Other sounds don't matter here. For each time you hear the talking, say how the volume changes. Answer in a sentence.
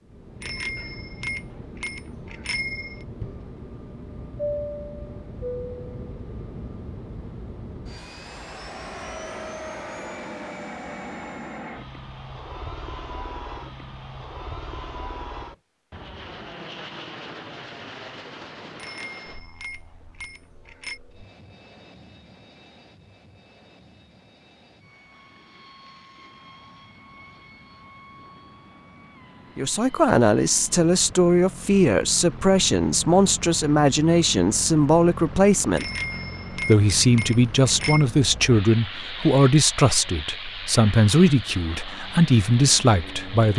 You can hear the talking from 29.6 to 35.9 s, at a steady volume; and from 36.5 to 43.5 s, at a steady volume.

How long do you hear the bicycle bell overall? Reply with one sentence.
You can hear the bicycle bell for 7 seconds altogether.